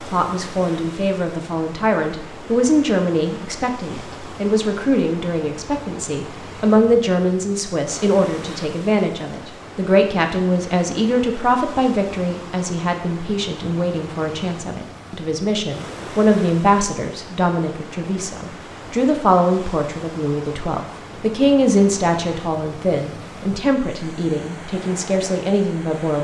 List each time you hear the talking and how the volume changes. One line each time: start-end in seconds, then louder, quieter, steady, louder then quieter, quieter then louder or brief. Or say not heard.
0.1-26.1 steady.